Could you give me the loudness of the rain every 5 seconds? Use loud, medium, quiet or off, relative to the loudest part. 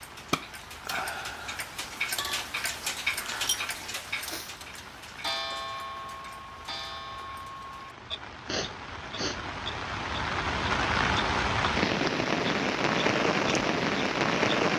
quiet, quiet, loud.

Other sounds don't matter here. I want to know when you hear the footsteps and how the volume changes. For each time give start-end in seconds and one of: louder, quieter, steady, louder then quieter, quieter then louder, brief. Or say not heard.
not heard.